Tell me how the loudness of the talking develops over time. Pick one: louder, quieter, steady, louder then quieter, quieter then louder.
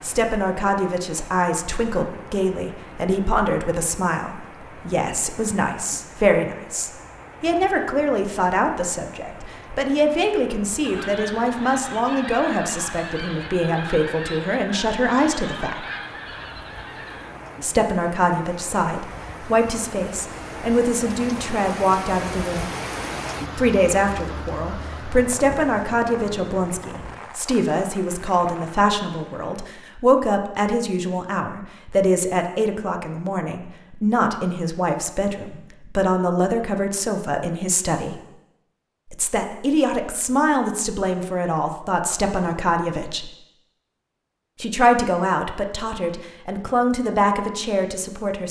steady.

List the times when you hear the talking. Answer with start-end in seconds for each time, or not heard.
0.0-15.8, 17.6-22.7, 23.6-38.2, 39.1-43.3, 44.6-48.4.